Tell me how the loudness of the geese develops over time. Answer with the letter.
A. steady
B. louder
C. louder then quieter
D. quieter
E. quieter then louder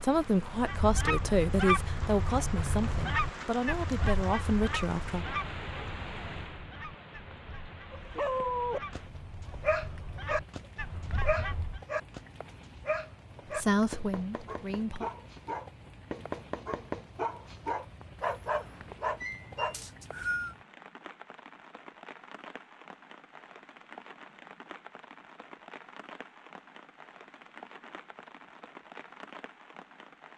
E.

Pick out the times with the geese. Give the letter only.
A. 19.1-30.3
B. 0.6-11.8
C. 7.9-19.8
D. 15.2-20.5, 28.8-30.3
B.